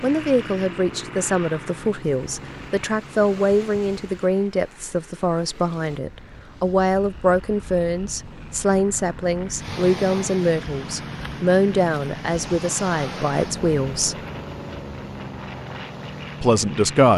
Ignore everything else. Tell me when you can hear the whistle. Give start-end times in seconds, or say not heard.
not heard.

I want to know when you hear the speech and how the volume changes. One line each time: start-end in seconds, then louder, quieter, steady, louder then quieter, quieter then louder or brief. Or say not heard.
0.0-14.2 steady
16.4-17.1 brief.